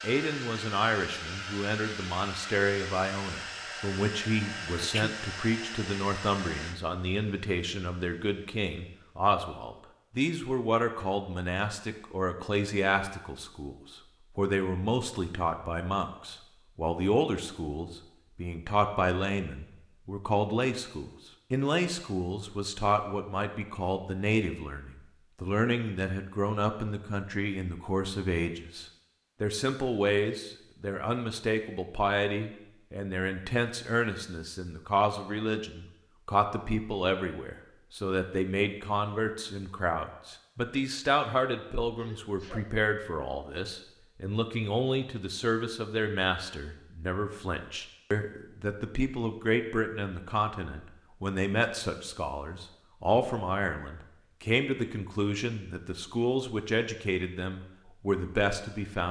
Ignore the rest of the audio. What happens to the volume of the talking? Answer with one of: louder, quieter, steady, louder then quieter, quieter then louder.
steady.